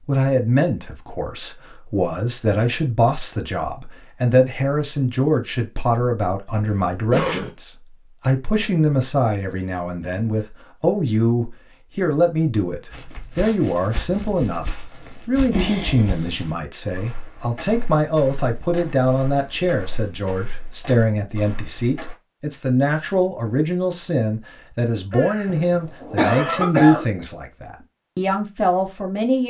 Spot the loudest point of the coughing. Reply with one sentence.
The volume of the coughing peaks at 27 seconds.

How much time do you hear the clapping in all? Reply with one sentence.
The clapping can't be heard in this clip.